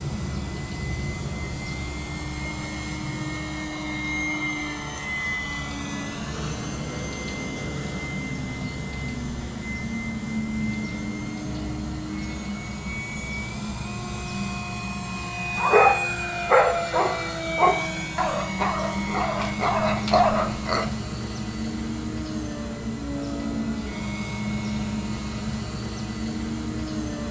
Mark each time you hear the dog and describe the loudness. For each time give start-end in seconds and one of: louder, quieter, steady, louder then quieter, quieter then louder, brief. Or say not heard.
15.6-20.9 quieter then louder.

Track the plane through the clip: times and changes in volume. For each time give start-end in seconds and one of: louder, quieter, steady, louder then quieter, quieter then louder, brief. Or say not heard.
0.0-27.2 steady.